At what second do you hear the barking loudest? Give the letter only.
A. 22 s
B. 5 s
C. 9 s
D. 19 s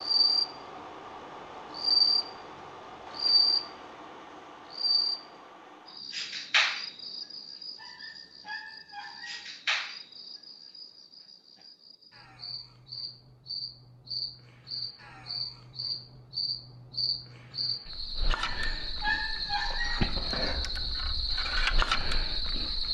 D.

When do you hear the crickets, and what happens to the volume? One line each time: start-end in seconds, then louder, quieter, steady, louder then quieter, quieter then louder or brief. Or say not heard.
0.0-22.8 quieter then louder.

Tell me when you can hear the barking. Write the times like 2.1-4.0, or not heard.
7.8-9.5, 18.4-20.1.